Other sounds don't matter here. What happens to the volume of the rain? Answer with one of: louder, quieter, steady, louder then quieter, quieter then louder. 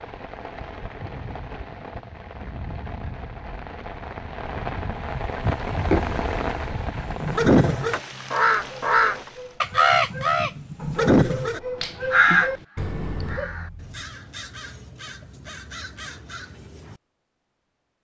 louder then quieter.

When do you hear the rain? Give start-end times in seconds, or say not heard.
0.0-9.6.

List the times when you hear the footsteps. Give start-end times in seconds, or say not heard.
not heard.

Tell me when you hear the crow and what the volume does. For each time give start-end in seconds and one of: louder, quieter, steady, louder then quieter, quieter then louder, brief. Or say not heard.
7.0-17.0 quieter.